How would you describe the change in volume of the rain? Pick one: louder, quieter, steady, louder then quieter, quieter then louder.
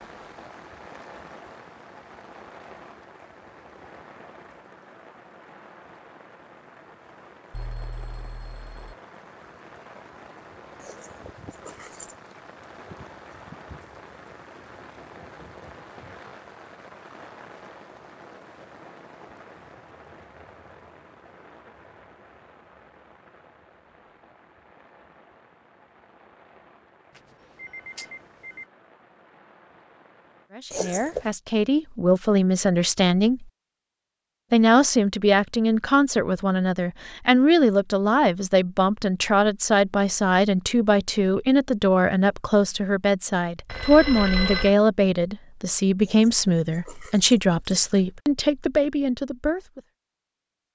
quieter.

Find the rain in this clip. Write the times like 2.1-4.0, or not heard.
0.0-30.5.